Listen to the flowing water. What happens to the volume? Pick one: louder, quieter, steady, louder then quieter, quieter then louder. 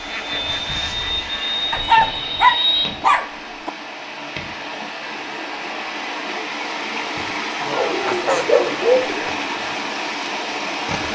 louder.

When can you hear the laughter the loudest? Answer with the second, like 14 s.
9 s.